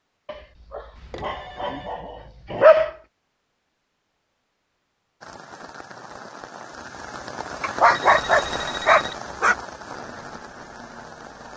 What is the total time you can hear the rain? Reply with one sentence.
You can hear the rain for 6 seconds altogether.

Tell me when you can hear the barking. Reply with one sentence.
The barking can be heard from 0.2 to 2.9 s and from 7.6 to 9.6 s.